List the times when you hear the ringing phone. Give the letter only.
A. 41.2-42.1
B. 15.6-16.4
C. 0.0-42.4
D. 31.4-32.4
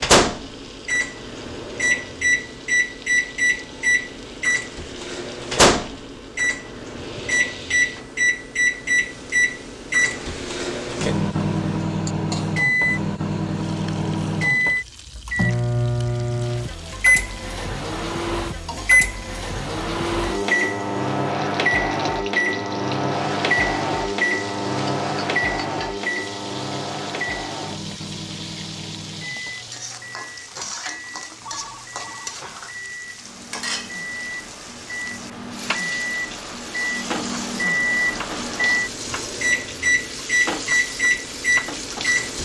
D.